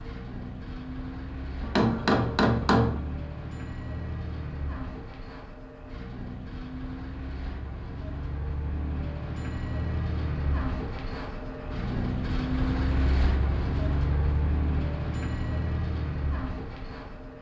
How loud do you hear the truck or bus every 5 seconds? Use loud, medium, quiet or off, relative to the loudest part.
medium, medium, loud, loud.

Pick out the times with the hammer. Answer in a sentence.
The hammer can be heard from 1.6 to 3.0 s.